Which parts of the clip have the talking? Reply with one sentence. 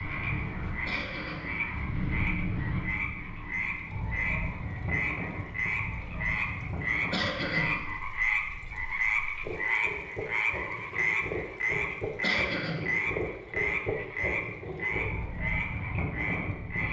You can't hear the talking here.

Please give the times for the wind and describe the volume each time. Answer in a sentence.
You can hear the wind from 0.0 to 16.8 s, getting quieter then louder.